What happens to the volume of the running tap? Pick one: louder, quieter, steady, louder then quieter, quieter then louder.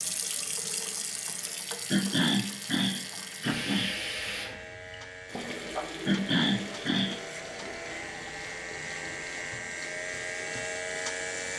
quieter.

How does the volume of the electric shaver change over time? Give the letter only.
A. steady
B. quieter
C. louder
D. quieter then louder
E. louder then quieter
C.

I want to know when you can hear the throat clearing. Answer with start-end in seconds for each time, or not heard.
1.9-4.0, 6.0-7.2.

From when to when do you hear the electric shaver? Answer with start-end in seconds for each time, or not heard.
0.0-11.5.